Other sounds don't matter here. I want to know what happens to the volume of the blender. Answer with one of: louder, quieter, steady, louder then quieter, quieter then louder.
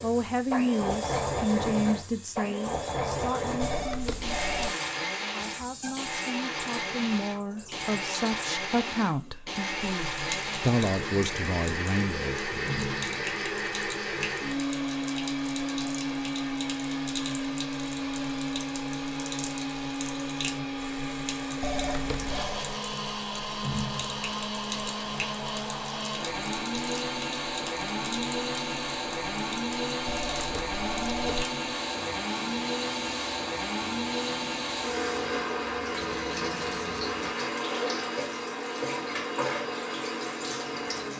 steady.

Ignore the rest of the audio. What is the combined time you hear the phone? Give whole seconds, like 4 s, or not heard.
4 s.